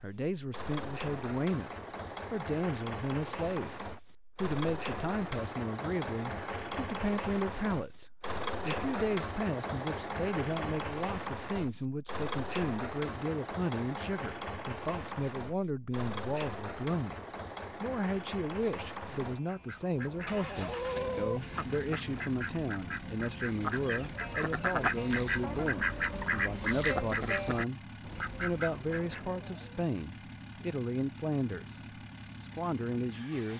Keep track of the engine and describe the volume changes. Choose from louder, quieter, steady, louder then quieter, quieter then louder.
quieter.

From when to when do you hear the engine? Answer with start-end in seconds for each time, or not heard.
0.0-33.5.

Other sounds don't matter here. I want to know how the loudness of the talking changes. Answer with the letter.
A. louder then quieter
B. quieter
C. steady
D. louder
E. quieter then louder
C.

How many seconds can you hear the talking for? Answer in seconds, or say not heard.
32 s.